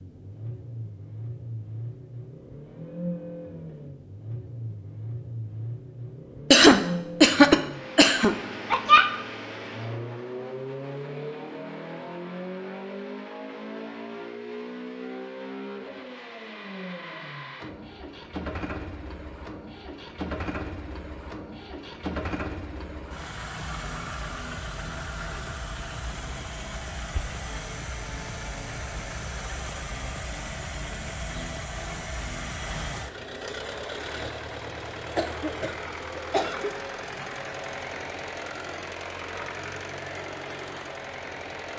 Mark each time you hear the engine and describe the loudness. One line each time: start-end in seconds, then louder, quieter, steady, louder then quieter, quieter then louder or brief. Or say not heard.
0.0-41.7 steady.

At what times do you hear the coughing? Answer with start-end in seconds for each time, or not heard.
6.5-9.1, 35.1-36.8.